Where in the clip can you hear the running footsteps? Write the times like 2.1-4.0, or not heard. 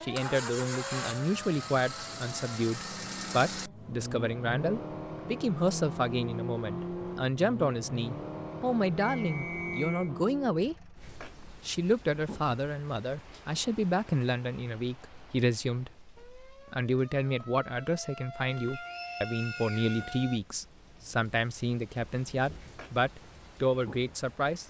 not heard.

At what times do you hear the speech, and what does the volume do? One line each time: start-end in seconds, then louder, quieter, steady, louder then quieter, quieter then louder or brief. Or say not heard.
0.0-24.6 steady.